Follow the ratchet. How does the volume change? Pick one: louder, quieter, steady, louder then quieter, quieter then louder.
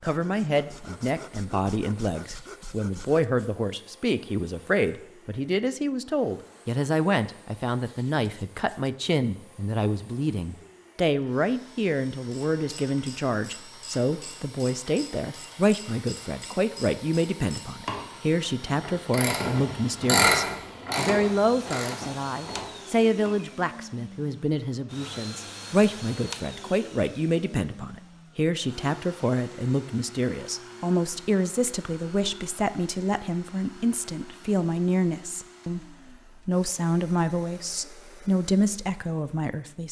louder then quieter.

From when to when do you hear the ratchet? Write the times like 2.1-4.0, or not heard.
12.2-23.4.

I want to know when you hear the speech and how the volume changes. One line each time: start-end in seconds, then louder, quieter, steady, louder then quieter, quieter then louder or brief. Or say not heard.
0.0-39.8 steady.